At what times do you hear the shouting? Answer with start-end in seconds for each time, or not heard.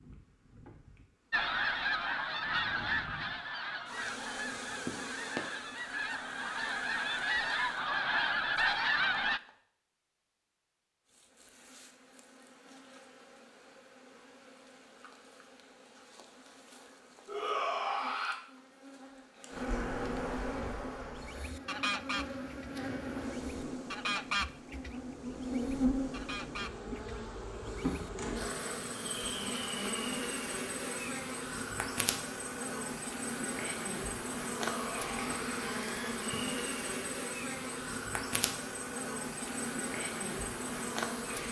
17.2-18.4, 34.6-36.2.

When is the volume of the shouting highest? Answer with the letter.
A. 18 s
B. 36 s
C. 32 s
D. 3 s
A.